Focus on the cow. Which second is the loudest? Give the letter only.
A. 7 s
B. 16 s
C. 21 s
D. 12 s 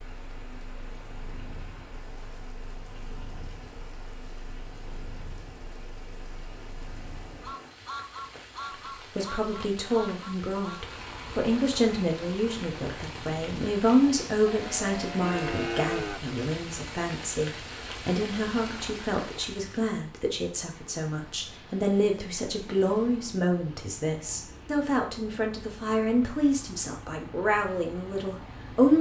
B.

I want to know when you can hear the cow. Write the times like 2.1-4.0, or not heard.
14.4-16.2.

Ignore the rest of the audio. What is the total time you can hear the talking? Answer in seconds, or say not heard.
20 s.